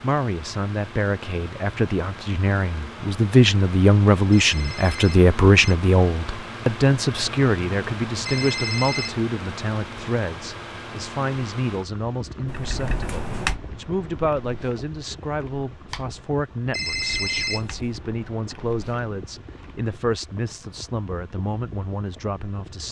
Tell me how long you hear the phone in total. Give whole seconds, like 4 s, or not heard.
3 s.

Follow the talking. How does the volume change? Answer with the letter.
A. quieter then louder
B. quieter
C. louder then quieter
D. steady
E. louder
B.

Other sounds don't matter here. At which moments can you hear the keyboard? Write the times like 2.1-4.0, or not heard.
12.4-19.9.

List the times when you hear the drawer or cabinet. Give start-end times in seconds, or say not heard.
not heard.